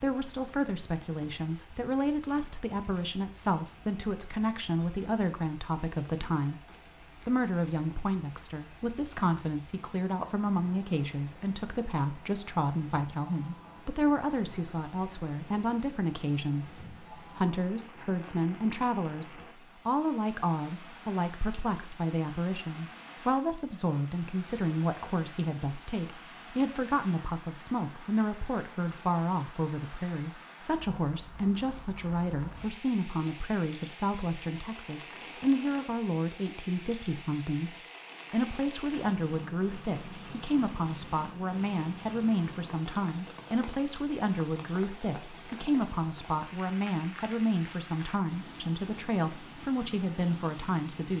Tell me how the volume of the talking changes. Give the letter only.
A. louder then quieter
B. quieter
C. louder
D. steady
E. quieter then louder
D.